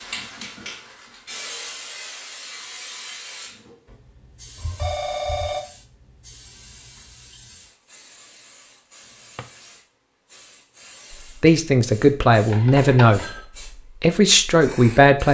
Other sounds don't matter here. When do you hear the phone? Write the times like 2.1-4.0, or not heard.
4.5-5.6, 12.5-13.4.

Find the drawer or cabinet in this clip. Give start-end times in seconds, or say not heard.
9.1-9.5.